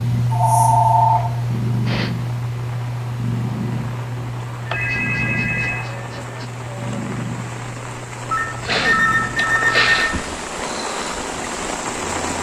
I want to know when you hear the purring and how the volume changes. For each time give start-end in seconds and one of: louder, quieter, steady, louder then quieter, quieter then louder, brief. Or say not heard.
0.0-12.3 quieter.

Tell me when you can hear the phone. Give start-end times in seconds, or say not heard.
0.3-1.2, 4.7-5.8, 8.3-10.2.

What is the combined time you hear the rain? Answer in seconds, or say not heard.
12 s.